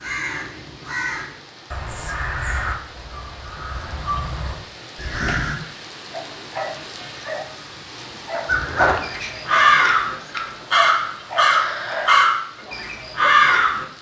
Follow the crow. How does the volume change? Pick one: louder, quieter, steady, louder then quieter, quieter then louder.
louder.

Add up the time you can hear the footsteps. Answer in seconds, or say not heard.
not heard.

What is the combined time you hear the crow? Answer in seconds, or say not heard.
11 s.